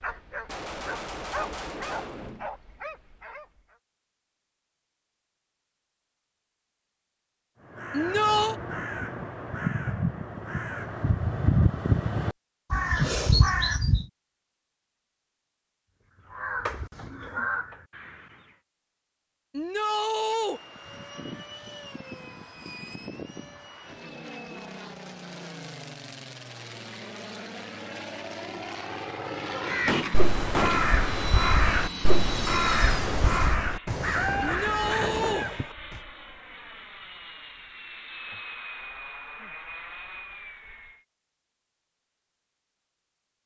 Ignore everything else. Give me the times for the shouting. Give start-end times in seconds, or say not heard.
7.9-8.6, 19.5-20.6, 34.4-35.5.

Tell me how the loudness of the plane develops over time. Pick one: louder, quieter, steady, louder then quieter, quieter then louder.
louder then quieter.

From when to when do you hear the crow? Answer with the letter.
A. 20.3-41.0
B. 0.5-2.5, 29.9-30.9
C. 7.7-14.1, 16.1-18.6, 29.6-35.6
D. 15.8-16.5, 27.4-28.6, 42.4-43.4
C.